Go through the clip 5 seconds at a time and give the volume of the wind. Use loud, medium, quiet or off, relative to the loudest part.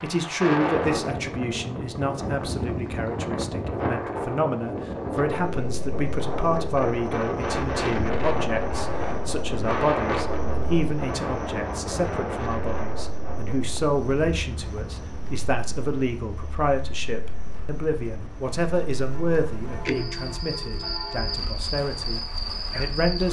loud, loud, loud, quiet, quiet.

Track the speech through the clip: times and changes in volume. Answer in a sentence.
The speech can be heard from 0.0 to 23.2 s, at a steady volume.